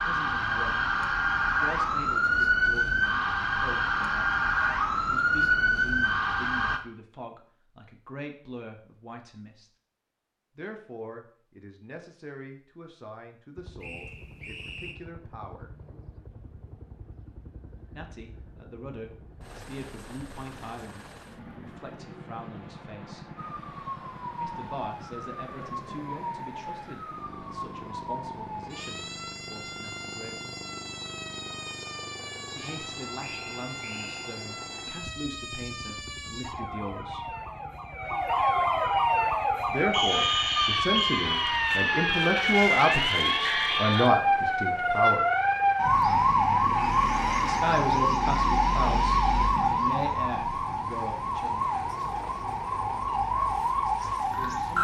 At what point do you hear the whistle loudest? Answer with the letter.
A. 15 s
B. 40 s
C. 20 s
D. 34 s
B.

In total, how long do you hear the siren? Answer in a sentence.
The siren can be heard for 38 seconds in total.